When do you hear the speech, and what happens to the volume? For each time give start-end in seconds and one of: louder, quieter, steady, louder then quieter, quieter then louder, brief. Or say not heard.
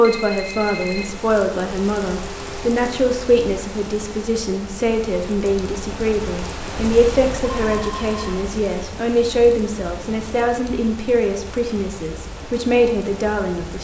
0.0-13.7 steady.